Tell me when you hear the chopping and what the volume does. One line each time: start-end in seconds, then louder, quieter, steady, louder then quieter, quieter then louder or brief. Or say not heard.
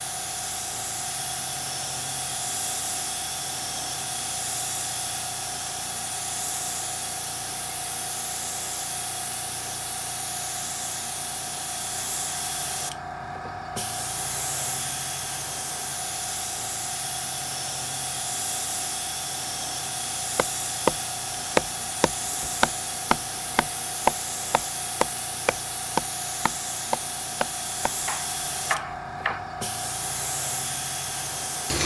20.4-29.4 quieter.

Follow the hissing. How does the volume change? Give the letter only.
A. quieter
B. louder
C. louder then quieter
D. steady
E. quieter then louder
D.